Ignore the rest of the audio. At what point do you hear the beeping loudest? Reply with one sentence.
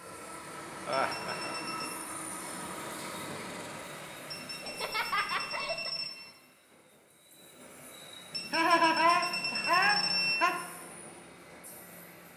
The volume of the beeping peaks at 10 seconds.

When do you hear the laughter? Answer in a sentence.
You can hear the laughter from 0.8 to 1.6 s, from 4.6 to 5.9 s and from 8.5 to 10.6 s.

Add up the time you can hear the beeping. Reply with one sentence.
The beeping can be heard for 5 seconds in total.